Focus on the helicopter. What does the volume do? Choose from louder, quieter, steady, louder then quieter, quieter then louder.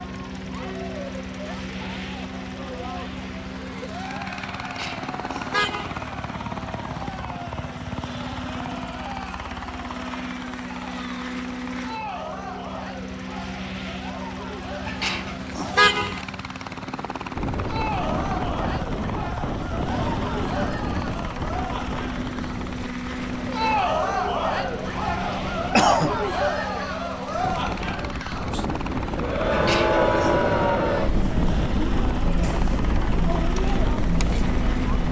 steady.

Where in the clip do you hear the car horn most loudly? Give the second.
16 s.